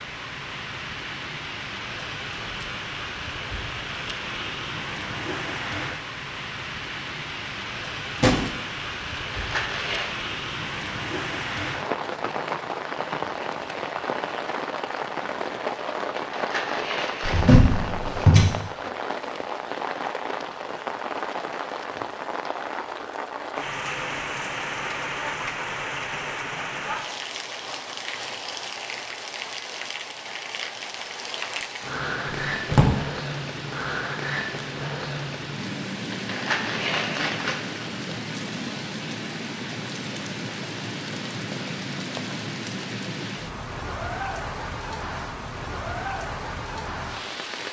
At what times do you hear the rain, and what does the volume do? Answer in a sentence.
You can hear the rain from 0.0 to 47.6 s, at a steady volume.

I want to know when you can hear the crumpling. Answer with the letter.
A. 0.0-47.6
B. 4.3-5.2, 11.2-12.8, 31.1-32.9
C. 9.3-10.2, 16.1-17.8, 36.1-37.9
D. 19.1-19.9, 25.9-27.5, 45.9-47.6
C.